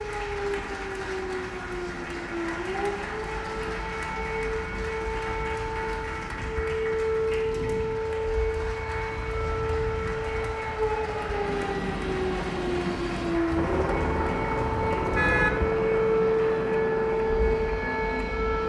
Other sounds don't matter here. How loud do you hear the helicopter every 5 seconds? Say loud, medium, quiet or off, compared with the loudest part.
medium, medium, loud, loud.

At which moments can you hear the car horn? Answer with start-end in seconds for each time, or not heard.
13.5-15.5.